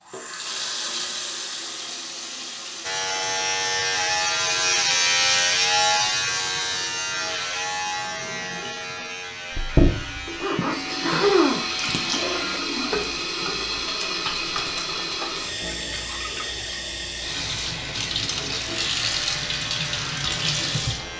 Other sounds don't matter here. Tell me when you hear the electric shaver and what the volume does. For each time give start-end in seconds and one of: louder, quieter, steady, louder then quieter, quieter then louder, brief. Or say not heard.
2.8-12.6 quieter
19.0-21.1 brief.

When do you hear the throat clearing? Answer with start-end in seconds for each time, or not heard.
10.6-12.0.